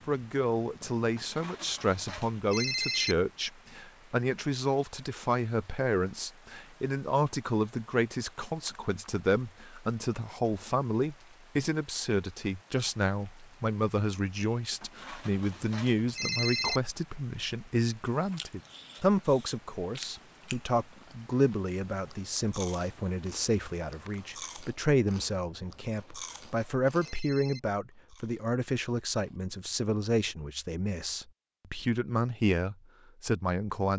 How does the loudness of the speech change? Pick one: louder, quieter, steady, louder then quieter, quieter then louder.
steady.